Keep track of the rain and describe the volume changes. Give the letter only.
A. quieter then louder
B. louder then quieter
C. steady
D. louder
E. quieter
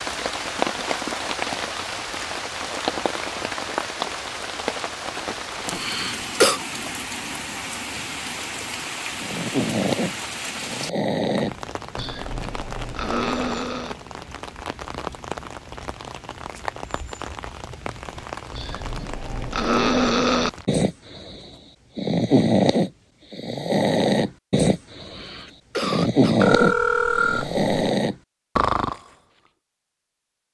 E.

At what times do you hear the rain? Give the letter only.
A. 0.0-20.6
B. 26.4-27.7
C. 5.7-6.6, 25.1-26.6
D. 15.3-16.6
A.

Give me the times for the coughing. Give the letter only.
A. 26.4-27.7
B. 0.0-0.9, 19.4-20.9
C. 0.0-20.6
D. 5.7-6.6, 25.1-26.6
D.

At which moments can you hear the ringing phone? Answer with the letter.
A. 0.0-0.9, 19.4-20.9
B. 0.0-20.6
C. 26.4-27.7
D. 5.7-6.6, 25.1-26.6
C.